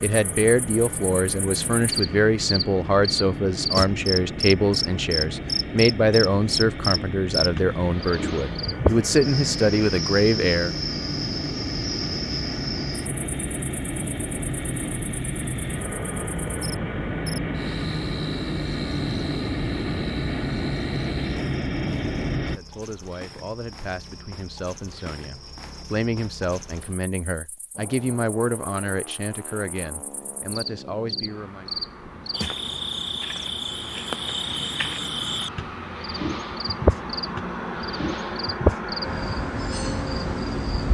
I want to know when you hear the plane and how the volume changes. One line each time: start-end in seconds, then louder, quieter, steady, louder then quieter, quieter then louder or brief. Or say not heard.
0.0-22.6 louder
27.7-40.8 louder.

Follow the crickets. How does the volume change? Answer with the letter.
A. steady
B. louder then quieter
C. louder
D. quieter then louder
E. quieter
D.